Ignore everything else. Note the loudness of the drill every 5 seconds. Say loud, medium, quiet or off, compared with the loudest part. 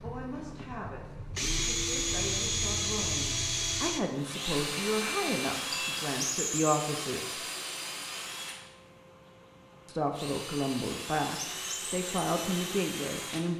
loud, loud, medium.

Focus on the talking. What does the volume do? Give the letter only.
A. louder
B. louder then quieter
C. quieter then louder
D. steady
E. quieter
A.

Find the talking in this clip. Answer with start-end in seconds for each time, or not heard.
0.0-7.3, 9.8-13.5.